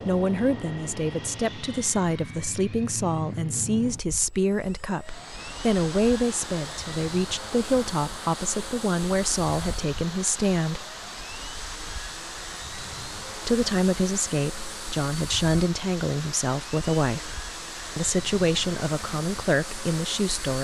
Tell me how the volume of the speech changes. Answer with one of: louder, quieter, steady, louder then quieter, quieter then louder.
steady.